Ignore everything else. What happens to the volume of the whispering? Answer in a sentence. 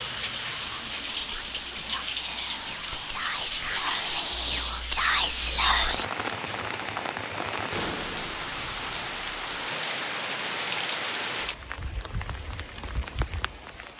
The volume of the whispering goes up.